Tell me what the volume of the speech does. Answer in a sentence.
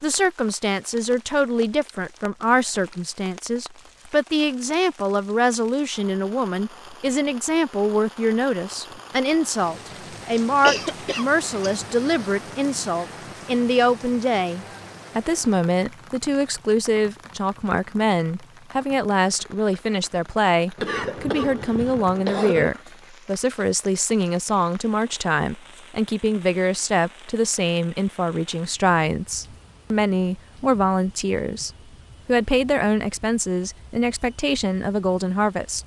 The loudness of the speech stays about the same.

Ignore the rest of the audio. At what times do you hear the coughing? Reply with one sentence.
The coughing can be heard from 10.6 to 12.2 s and from 20.8 to 22.7 s.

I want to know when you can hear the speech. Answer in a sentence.
The speech can be heard from 0.0 to 35.8 s.